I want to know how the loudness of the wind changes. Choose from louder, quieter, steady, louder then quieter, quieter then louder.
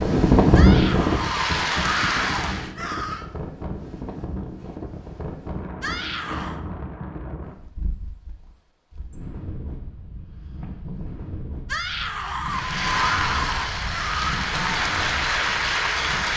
quieter.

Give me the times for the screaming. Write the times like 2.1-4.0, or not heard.
0.5-3.2, 5.8-6.6, 11.7-14.3.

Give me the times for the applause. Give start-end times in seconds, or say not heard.
0.0-2.8, 12.4-16.3.